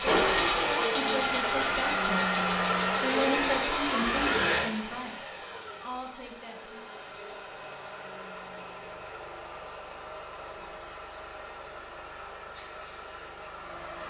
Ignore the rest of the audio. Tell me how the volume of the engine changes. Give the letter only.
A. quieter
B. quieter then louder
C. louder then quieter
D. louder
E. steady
A.